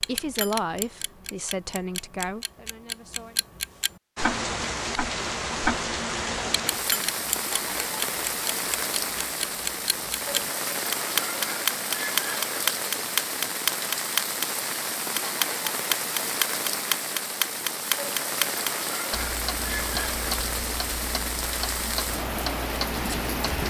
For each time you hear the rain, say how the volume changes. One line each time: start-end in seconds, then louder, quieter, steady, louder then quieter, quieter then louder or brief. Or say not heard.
4.2-23.6 steady.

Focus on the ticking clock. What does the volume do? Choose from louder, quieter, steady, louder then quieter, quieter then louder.
louder then quieter.